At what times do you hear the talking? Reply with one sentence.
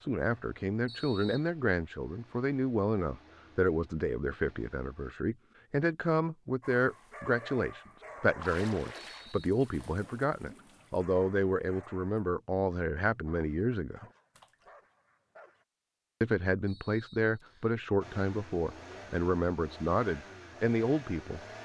You can hear the talking from 0.0 to 14.1 s and from 16.2 to 21.4 s.